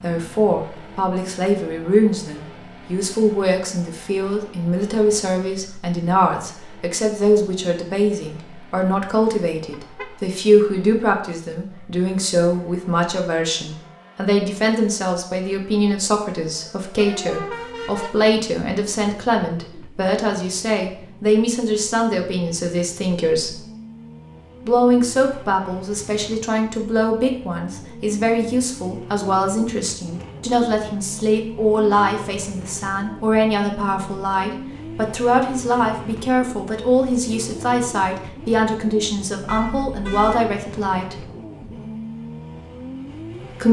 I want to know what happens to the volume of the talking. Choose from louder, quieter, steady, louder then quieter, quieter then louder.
steady.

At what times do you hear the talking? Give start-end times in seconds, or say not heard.
0.0-23.6, 24.6-41.2.